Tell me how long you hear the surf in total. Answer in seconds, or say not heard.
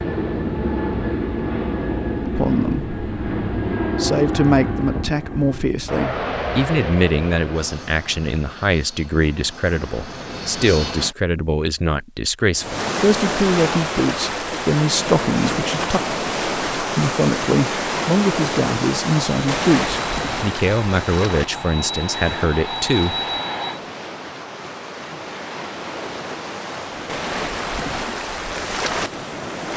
17 s.